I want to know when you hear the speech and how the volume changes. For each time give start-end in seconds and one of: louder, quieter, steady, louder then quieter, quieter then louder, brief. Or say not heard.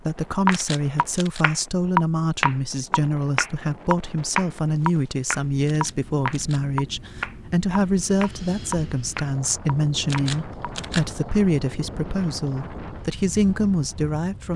0.0-14.5 steady.